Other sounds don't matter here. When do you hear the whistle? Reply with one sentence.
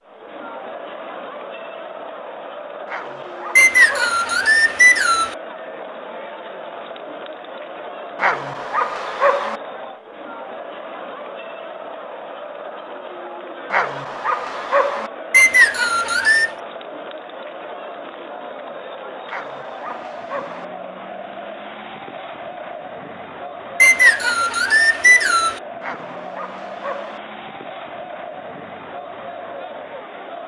The whistle can be heard from 3.5 to 5.3 s, from 15.3 to 16.5 s and from 23.8 to 25.6 s.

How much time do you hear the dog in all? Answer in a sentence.
You can hear the dog for 7 seconds altogether.